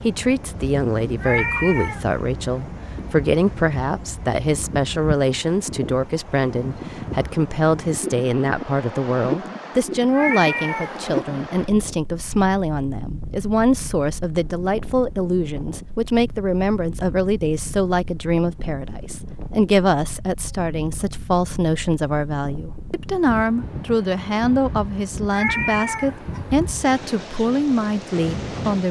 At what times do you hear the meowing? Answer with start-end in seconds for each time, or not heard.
1.2-2.0, 10.1-11.0, 25.3-26.4.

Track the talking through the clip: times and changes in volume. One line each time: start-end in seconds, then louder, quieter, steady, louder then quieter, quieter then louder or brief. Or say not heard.
0.0-28.8 steady.